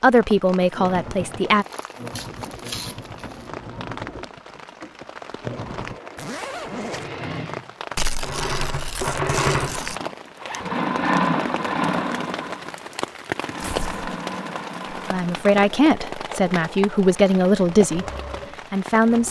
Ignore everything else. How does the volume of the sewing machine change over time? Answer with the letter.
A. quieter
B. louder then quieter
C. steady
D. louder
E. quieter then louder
B.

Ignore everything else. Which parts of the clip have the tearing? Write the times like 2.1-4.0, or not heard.
1.7-3.4, 8.0-9.9, 13.6-14.2.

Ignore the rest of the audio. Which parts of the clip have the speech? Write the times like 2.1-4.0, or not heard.
0.0-1.6, 15.1-18.1, 18.7-19.2.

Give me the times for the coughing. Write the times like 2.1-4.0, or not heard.
not heard.